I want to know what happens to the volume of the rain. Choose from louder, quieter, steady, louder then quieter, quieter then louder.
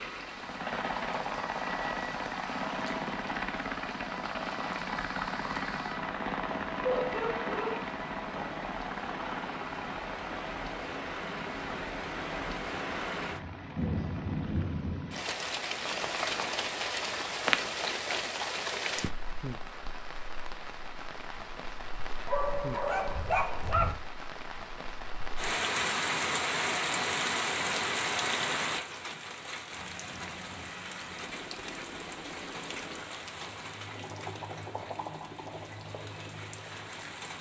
louder then quieter.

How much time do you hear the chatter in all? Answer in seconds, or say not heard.
not heard.